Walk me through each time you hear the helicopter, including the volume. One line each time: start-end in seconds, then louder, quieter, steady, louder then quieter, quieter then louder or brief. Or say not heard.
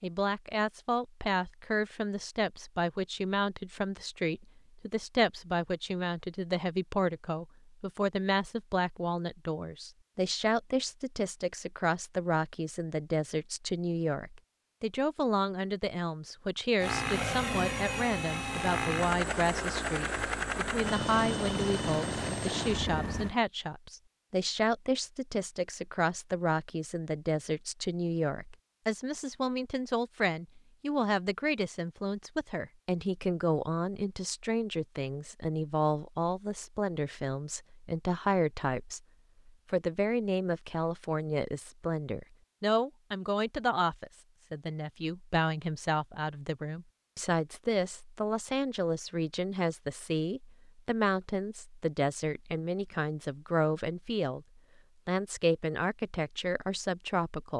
16.8-23.4 steady.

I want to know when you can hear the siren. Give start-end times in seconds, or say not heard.
not heard.